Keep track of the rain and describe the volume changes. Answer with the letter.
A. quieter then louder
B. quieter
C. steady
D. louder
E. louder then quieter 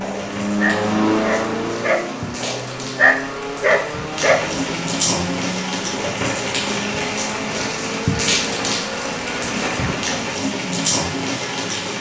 D.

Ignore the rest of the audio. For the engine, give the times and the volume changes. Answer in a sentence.
The engine can be heard from 0.0 to 11.9 s, getting quieter.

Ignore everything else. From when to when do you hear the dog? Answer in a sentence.
The dog can be heard from 0.0 to 4.6 s.